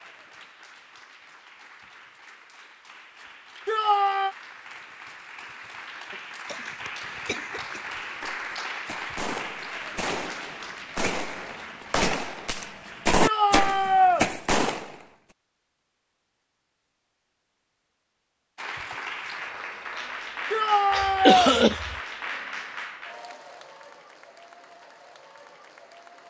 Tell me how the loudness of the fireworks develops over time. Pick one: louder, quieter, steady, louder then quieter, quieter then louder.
louder.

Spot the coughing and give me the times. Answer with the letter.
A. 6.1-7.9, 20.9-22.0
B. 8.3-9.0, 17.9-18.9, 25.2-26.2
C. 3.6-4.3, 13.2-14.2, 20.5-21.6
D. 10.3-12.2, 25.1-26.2
A.